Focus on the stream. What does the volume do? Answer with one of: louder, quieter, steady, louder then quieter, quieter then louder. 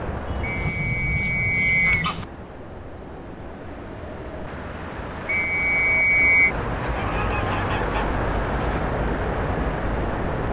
louder.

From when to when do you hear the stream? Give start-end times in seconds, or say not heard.
0.0-10.4.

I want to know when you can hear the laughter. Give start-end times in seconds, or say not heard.
not heard.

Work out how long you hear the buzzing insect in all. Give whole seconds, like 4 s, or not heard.
not heard.